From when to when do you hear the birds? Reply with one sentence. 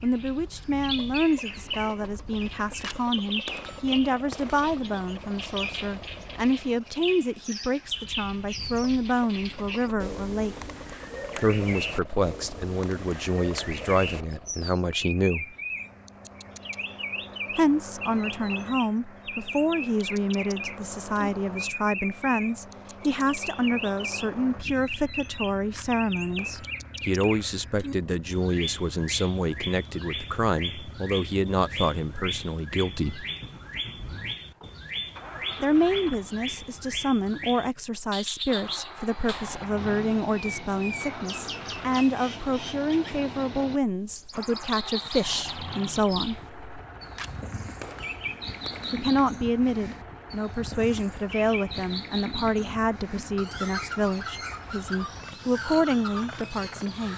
You can hear the birds from 0.0 to 57.1 s.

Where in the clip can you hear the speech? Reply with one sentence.
You can hear the speech from 0.0 to 10.6 s, from 11.3 to 15.6 s, from 17.6 to 33.2 s, from 35.6 to 46.4 s and from 48.9 to 57.1 s.